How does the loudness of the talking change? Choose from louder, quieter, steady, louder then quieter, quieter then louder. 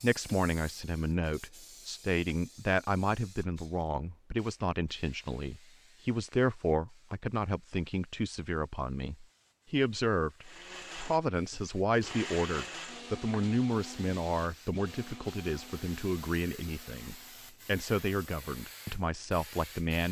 steady.